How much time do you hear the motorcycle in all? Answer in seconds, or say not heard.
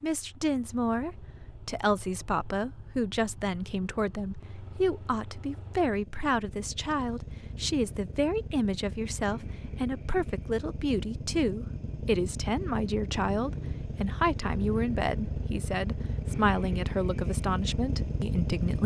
19 s.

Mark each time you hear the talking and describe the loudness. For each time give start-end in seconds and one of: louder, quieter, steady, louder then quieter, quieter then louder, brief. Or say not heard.
0.0-18.8 steady.